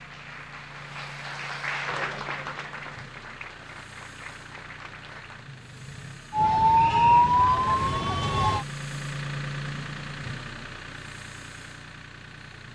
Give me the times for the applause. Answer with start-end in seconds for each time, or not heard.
0.0-5.5.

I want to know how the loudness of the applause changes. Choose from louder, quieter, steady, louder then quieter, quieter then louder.
louder then quieter.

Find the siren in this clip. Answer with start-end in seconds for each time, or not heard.
6.3-8.7.